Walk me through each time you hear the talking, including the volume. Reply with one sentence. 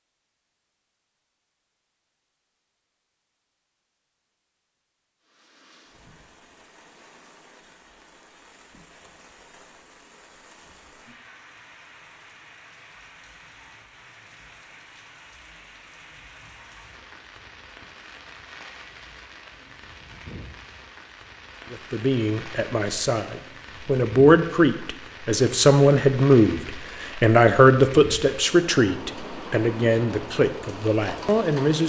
You can hear the talking from 21.7 to 31.8 s, getting louder then quieter.